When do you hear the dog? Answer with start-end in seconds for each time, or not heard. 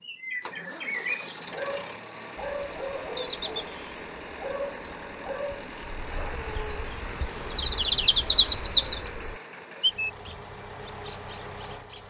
1.5-6.8.